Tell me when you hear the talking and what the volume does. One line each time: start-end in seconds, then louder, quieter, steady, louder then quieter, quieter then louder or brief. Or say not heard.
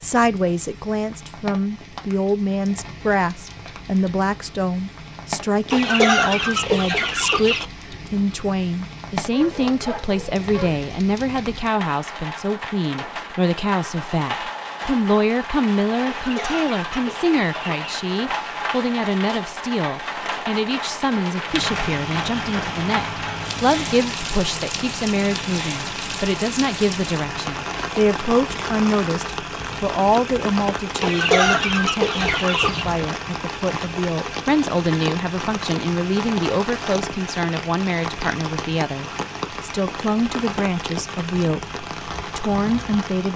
0.0-43.3 steady.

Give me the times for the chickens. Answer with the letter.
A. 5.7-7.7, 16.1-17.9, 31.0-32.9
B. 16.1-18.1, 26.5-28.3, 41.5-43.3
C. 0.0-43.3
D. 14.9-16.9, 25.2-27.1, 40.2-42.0
A.